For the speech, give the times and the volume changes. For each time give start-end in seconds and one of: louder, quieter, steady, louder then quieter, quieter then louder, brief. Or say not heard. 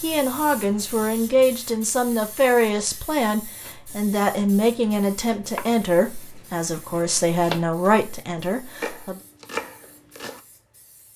0.0-9.2 steady.